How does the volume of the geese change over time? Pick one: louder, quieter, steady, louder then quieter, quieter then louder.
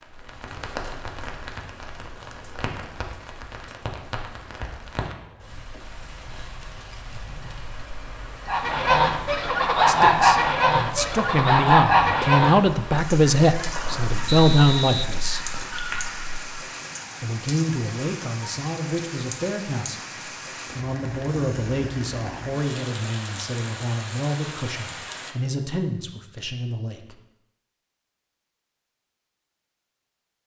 quieter.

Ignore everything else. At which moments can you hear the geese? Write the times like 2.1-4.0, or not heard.
8.4-16.4.